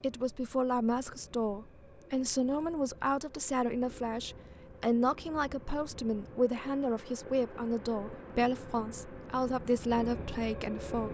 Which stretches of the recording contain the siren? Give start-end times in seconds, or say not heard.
not heard.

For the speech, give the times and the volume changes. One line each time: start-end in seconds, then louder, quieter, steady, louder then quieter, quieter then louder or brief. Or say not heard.
0.0-11.0 steady.